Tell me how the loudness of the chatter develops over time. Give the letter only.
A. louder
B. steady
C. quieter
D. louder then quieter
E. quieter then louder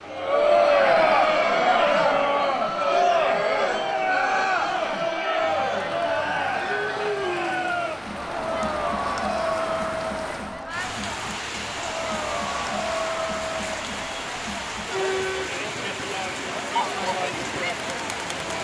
C.